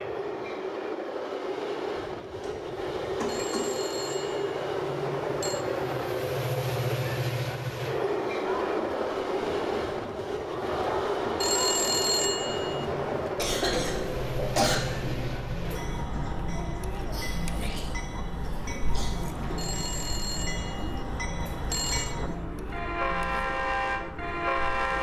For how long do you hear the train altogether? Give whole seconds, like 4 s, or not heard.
25 s.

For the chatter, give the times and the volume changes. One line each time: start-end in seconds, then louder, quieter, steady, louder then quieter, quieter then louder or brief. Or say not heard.
8.4-24.9 quieter.